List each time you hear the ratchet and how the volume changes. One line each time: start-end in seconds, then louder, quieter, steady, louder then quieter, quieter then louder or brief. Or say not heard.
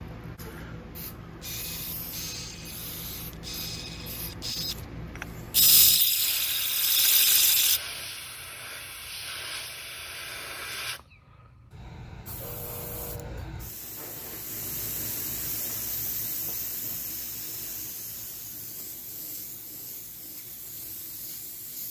1.4-7.8 louder.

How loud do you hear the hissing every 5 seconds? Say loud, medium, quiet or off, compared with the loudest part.
loud, loud, loud, loud, medium.